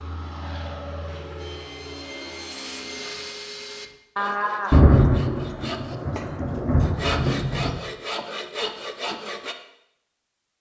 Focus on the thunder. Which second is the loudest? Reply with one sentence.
The loudest moment of the thunder is at 5 seconds.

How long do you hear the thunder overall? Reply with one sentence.
The thunder can be heard for 3 seconds in total.